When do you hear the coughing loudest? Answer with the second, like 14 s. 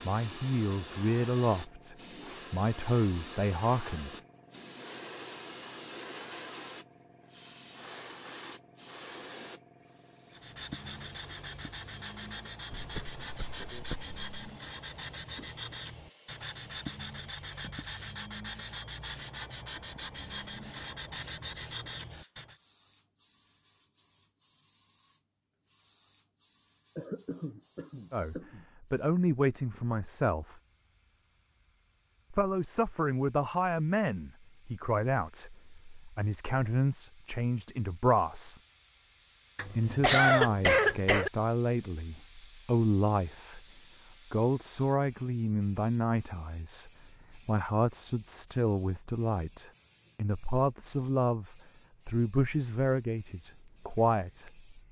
40 s.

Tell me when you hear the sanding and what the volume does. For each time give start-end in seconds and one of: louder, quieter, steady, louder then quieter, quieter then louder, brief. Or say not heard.
10.3-22.6 steady.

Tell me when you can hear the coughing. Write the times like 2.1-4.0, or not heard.
12.7-14.3, 26.9-28.6, 39.5-41.3.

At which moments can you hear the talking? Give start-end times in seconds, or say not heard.
0.0-4.2, 28.1-30.6, 32.3-38.6, 39.6-43.6, 44.3-54.8.